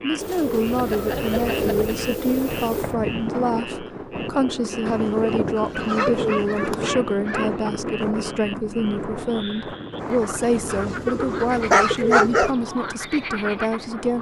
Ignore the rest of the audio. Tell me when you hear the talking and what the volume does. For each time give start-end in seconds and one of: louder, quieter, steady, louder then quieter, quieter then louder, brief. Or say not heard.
0.0-14.1 steady.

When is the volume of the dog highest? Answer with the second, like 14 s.
12 s.